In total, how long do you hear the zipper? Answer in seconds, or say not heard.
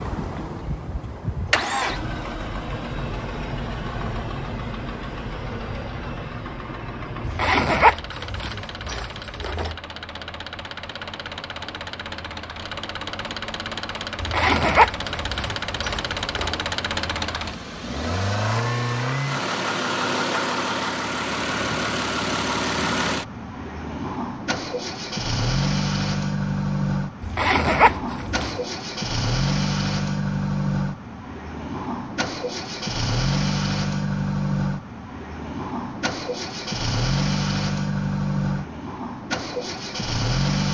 6 s.